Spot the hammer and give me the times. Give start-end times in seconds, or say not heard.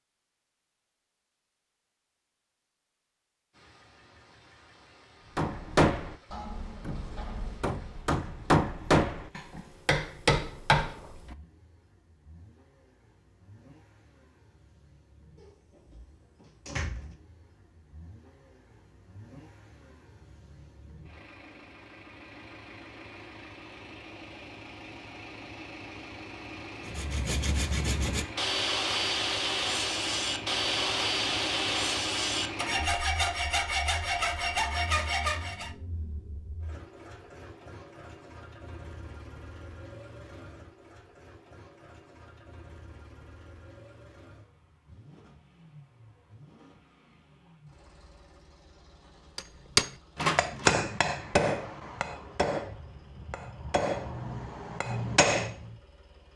5.3-11.1, 49.4-55.5.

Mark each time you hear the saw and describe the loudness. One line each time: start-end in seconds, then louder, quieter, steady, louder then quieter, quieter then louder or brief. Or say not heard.
26.8-35.8 steady.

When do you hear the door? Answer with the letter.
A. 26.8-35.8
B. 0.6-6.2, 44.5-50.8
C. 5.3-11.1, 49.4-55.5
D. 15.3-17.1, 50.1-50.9
D.